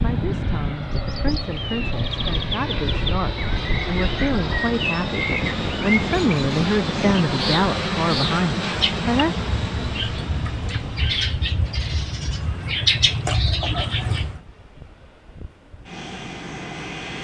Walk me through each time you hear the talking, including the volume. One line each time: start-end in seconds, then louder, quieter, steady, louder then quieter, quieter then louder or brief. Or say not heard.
0.0-9.4 louder.